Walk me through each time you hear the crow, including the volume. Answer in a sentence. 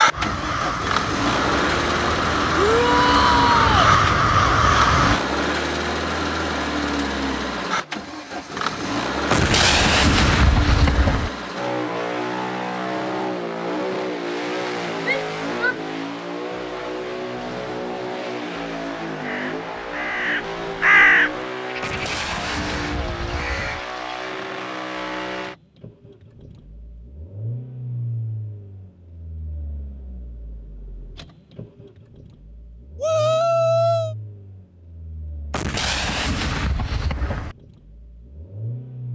You can hear the crow from 0.1 to 5.2 s, getting louder; and from 19.2 to 24.3 s, getting louder then quieter.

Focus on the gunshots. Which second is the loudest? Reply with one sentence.
The loudest moment of the gunshots is at 10 seconds.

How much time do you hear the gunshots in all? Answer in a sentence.
The gunshots can be heard for 6 seconds in total.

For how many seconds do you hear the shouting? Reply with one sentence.
The shouting can be heard for 3 seconds in total.